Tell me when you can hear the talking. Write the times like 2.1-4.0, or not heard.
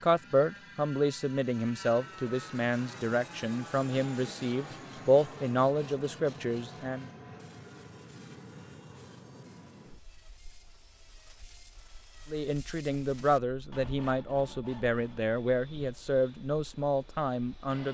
0.0-7.0, 12.3-17.8.